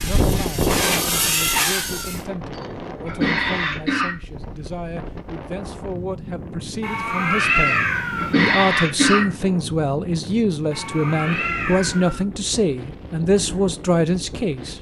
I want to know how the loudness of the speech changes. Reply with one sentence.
The loudness of the speech goes up.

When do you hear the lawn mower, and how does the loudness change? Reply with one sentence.
You can't hear the lawn mower here.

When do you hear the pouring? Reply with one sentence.
The pouring can't be heard in this clip.